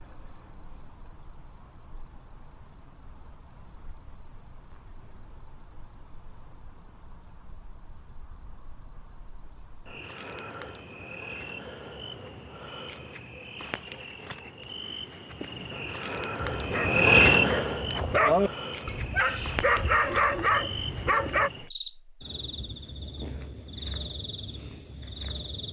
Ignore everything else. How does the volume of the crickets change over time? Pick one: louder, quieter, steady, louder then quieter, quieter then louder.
louder then quieter.